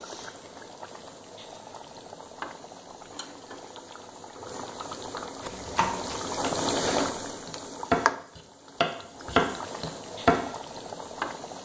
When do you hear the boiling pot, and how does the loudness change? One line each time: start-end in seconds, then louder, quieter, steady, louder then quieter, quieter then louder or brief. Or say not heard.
0.0-11.6 louder then quieter.